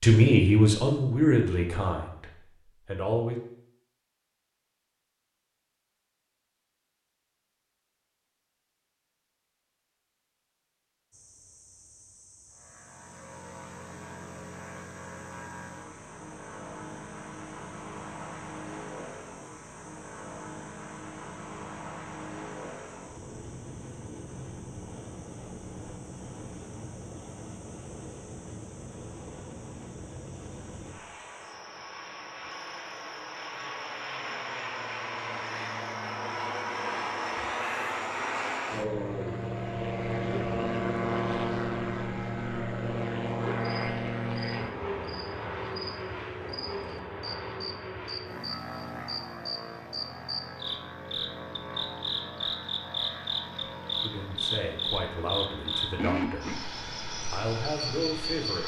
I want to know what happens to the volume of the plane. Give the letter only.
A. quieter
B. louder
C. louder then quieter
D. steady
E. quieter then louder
C.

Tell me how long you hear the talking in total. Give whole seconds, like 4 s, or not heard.
7 s.